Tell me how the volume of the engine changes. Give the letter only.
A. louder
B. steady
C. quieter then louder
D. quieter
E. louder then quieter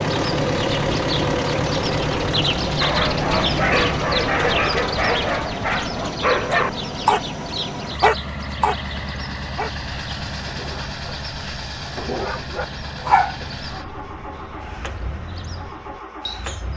D.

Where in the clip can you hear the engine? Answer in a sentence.
The engine can be heard from 0.0 to 16.7 s.